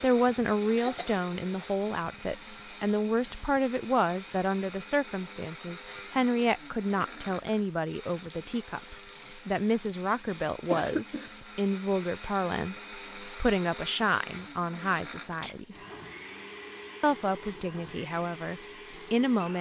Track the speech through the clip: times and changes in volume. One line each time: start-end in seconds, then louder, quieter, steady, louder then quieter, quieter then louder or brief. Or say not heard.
0.0-15.8 steady
17.0-19.5 brief.